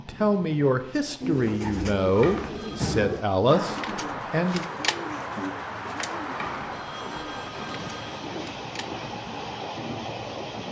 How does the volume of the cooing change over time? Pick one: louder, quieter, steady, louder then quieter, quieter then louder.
quieter.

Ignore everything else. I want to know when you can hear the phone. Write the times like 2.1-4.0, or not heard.
2.1-2.8, 6.3-8.2.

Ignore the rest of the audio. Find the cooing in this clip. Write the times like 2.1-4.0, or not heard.
1.2-9.6.